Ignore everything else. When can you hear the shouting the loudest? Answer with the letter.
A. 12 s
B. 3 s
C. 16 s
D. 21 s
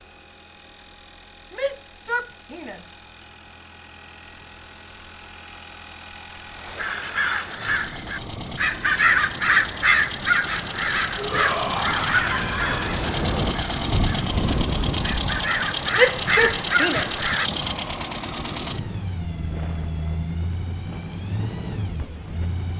C.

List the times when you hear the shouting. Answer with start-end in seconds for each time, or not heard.
1.5-3.0, 11.2-13.0, 15.9-17.1.